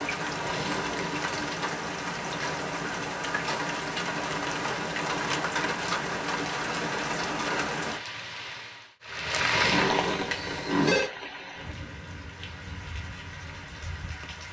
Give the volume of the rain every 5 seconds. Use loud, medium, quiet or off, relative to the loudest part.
loud, loud, medium.